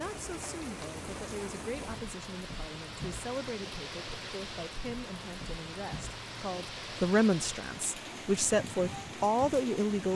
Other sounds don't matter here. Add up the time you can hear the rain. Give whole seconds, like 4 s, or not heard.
10 s.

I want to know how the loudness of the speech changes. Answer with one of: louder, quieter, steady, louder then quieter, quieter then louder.
louder.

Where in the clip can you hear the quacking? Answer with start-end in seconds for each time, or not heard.
not heard.